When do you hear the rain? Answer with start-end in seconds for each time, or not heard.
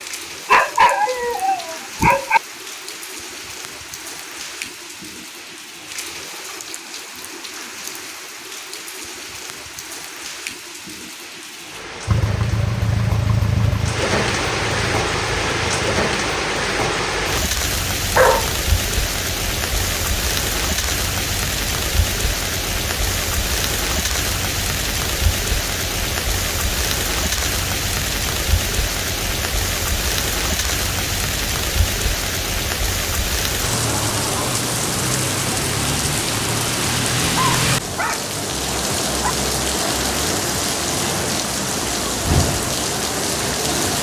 0.0-43.9.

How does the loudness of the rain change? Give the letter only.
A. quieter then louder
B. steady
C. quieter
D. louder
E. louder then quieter
D.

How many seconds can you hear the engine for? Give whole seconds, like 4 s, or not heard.
4 s.